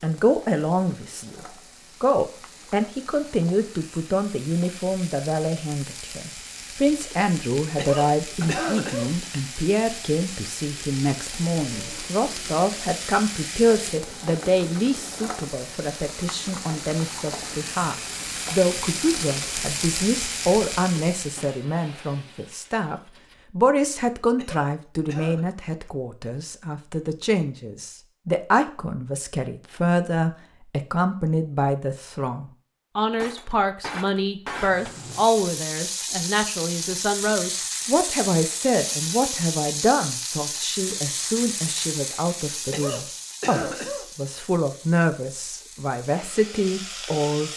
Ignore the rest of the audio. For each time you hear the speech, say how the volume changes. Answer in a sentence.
The speech can be heard from 0.0 to 47.5 s, at a steady volume.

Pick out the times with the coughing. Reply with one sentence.
The coughing can be heard from 7.8 to 9.1 s, from 24.4 to 25.5 s and from 42.7 to 44.0 s.